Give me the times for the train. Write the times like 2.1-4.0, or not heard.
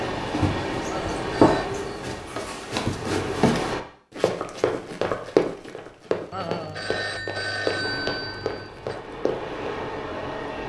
0.0-3.9, 7.8-10.6.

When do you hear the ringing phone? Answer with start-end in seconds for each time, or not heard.
0.8-1.7, 6.3-9.0.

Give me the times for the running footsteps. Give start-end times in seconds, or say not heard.
0.2-9.8.